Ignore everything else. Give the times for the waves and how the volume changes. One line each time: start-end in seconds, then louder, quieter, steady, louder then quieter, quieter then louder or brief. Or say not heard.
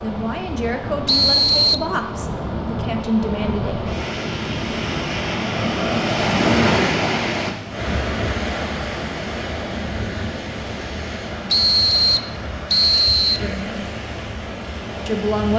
0.0-15.5 louder then quieter.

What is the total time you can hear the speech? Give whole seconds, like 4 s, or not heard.
5 s.